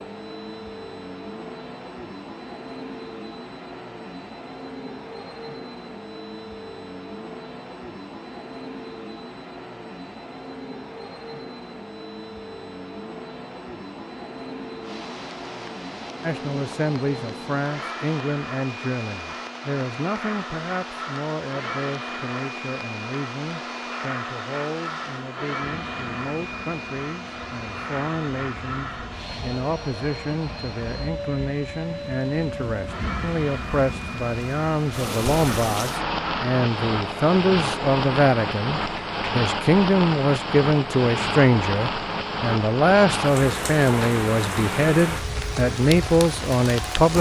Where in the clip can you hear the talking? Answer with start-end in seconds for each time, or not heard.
16.2-47.1.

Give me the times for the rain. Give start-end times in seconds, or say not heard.
14.8-47.1.